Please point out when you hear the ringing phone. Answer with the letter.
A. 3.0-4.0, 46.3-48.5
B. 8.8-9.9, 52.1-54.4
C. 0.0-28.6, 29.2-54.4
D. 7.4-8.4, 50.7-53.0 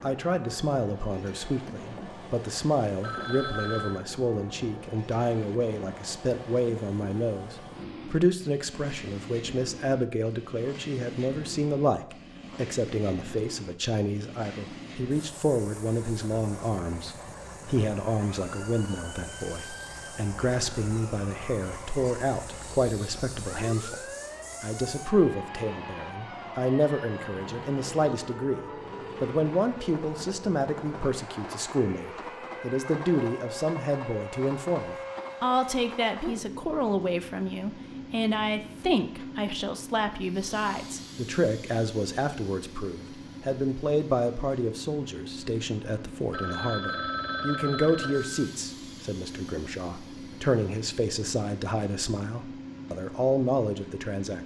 A.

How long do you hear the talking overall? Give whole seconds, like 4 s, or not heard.
54 s.